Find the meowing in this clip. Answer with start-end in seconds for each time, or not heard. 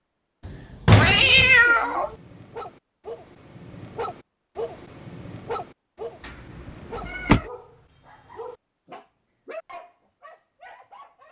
0.9-2.1, 6.9-7.5.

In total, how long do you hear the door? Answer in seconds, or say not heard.
2 s.